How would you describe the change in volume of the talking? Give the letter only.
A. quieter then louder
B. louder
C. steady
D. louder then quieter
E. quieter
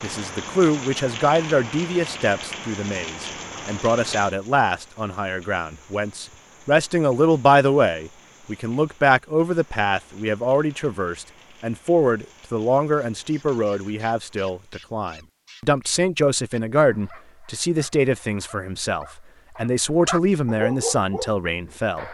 C.